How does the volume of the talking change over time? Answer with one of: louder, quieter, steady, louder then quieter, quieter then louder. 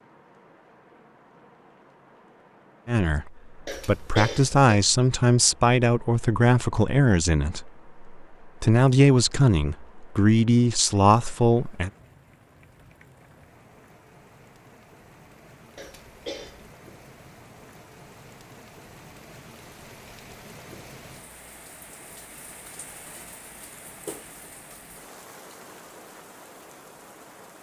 steady.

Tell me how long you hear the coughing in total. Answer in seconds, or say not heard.
2 s.